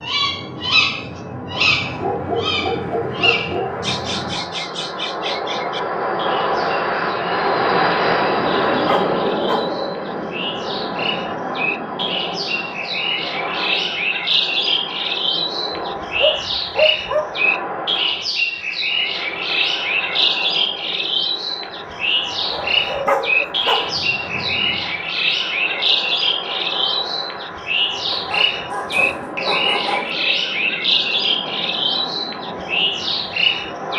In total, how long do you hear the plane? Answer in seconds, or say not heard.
34 s.